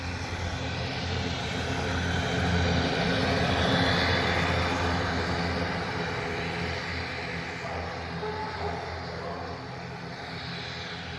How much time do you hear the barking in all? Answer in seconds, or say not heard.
2 s.